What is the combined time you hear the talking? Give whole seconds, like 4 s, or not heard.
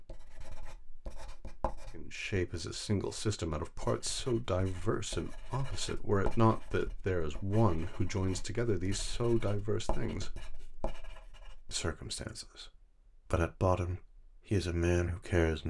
12 s.